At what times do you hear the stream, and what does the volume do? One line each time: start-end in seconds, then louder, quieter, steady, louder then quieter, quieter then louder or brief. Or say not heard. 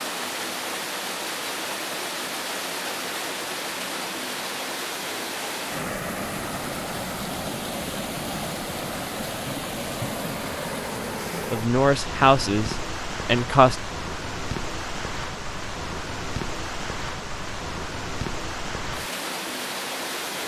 0.0-20.4 steady.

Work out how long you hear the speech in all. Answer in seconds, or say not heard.
2 s.